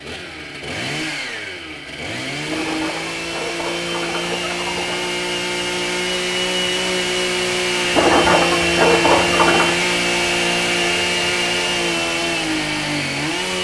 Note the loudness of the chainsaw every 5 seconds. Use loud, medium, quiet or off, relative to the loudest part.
medium, loud, loud.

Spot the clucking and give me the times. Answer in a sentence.
The clucking can be heard from 2.5 to 5.1 s and from 7.9 to 9.8 s.